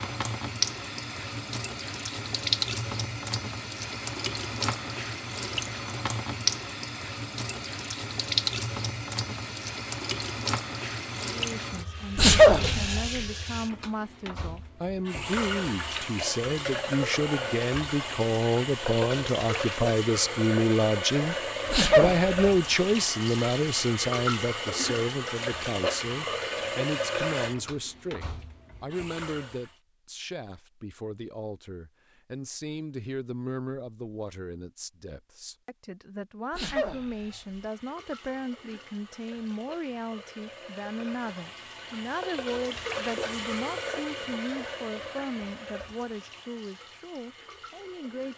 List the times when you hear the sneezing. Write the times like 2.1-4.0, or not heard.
12.2-13.0, 21.7-22.3, 36.5-37.4.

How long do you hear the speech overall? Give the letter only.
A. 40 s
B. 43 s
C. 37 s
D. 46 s
C.